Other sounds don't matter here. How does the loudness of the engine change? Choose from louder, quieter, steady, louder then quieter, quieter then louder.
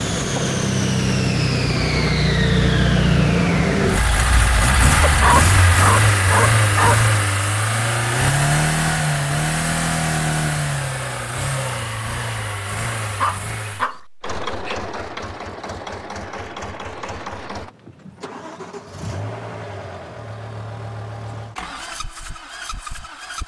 quieter.